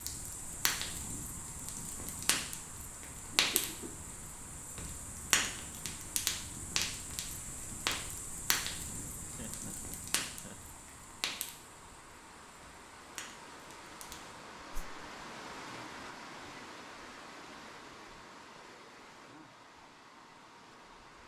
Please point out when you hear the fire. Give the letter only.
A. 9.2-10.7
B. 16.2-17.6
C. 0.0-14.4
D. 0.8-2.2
C.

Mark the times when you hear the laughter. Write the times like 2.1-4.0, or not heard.
9.2-10.7.